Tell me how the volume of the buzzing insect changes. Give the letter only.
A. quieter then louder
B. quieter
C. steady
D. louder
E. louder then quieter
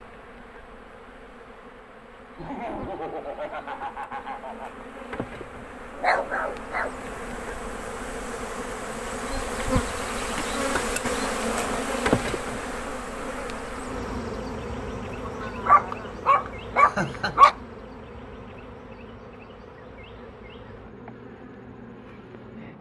E.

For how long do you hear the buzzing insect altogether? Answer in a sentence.
You can hear the buzzing insect for 23 seconds altogether.